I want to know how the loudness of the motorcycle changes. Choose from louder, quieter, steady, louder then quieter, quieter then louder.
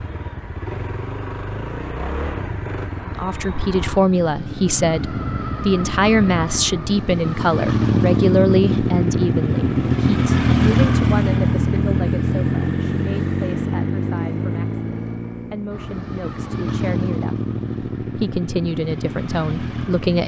louder then quieter.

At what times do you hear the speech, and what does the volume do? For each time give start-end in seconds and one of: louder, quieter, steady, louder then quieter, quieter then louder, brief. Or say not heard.
3.0-20.2 quieter then louder.